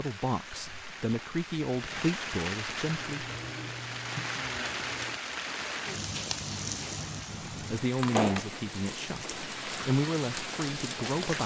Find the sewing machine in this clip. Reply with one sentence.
The sewing machine can be heard from 2.9 to 5.2 s.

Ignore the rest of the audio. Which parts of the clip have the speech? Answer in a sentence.
You can hear the speech from 0.0 to 3.2 s and from 7.5 to 11.4 s.